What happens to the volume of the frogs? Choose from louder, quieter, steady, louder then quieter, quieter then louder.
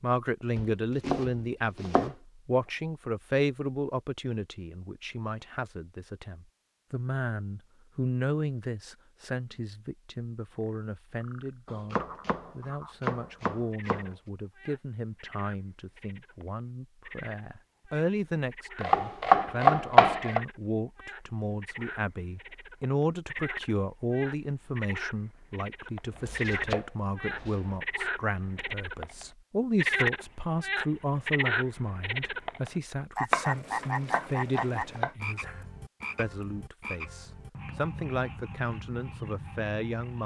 louder then quieter.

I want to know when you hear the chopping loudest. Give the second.
20 s.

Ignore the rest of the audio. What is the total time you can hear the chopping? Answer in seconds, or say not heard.
9 s.